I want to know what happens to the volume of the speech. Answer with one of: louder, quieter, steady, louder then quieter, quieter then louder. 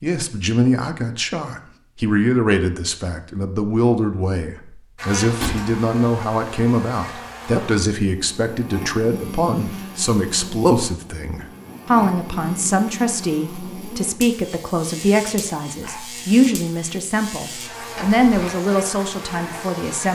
steady.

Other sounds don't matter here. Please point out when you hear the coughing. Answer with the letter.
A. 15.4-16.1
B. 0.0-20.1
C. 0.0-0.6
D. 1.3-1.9
A.